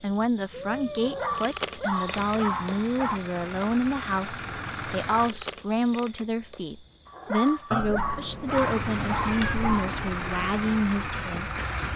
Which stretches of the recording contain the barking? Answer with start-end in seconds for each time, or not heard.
0.9-3.2, 7.0-9.9.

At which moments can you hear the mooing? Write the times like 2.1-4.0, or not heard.
not heard.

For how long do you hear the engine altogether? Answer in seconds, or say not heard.
7 s.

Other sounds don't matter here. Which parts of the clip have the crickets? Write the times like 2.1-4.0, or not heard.
0.0-11.9.